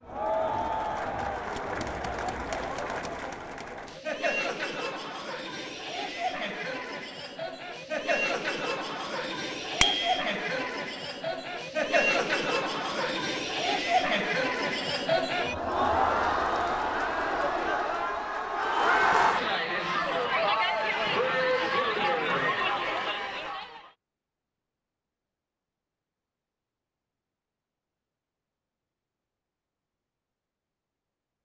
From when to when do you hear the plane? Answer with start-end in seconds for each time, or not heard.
not heard.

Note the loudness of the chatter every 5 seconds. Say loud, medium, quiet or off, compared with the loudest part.
medium, medium, loud, loud, loud, off, off.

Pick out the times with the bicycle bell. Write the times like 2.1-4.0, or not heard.
9.8-10.2.